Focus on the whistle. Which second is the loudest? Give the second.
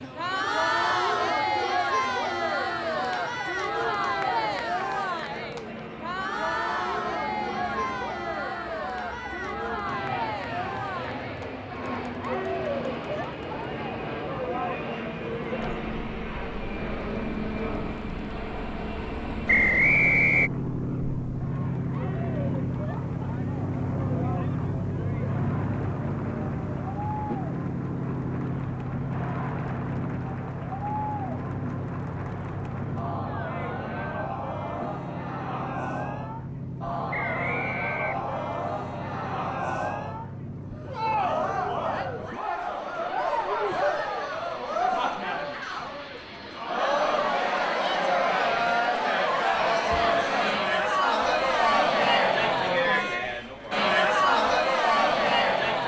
20 s.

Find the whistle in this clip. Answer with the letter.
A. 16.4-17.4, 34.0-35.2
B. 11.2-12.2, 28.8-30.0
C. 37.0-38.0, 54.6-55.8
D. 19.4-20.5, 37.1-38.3
D.